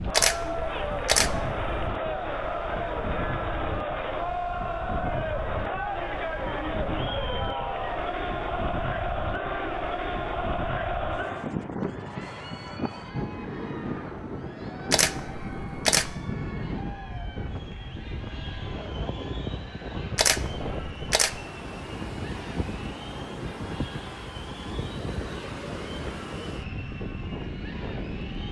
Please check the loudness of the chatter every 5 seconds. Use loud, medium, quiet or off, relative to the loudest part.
loud, loud, medium, quiet, quiet, quiet.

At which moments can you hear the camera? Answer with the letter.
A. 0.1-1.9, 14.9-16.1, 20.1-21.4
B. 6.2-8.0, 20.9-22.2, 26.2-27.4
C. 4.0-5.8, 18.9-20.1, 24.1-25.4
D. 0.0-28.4
A.